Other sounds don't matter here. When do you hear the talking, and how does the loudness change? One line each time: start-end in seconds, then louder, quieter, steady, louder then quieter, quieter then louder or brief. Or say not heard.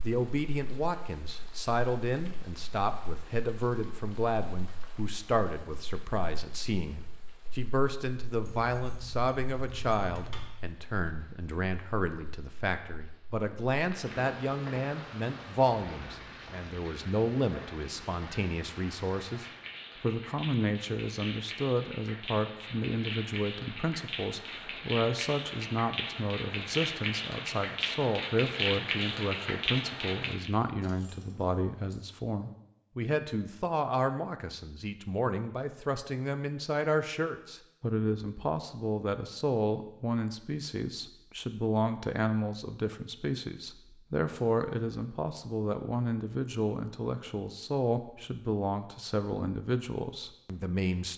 0.0-51.1 steady.